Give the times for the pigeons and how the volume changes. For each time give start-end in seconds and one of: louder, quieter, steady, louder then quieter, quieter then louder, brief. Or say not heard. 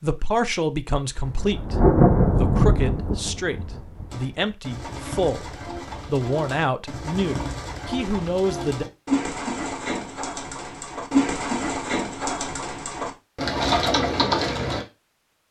4.1-14.8 louder.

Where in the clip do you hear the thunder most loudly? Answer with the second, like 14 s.
2 s.